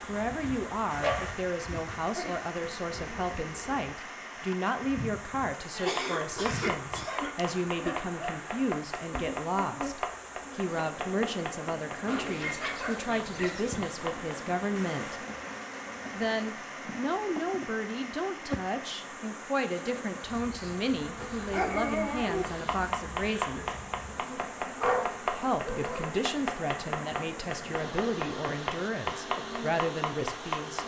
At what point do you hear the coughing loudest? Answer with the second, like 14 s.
6 s.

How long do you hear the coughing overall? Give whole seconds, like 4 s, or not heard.
3 s.